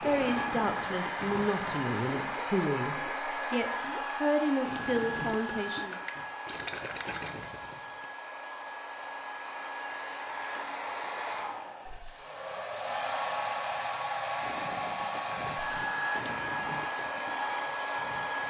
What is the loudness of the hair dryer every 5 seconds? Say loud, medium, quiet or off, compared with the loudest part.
loud, medium, loud, loud.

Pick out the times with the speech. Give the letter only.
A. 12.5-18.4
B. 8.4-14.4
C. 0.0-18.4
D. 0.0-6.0
D.